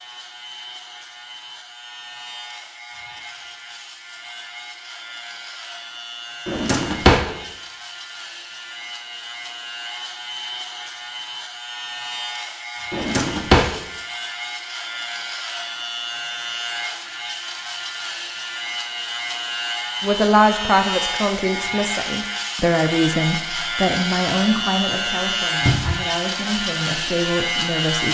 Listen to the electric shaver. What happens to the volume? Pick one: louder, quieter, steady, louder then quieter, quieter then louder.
louder.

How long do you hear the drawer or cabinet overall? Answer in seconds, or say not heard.
2 s.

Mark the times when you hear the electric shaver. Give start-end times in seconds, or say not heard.
0.0-28.1.